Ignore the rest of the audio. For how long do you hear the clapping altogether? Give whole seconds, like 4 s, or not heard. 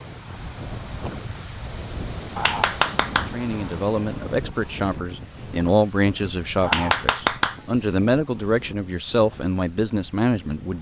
2 s.